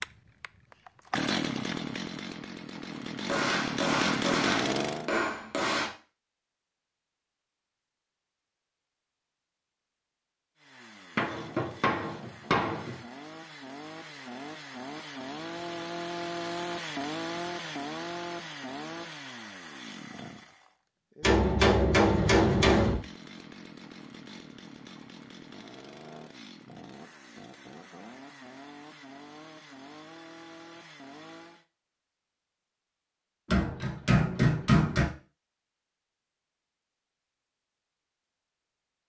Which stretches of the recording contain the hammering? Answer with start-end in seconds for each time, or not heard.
3.2-5.9, 11.2-13.0, 21.2-22.9, 33.5-35.0.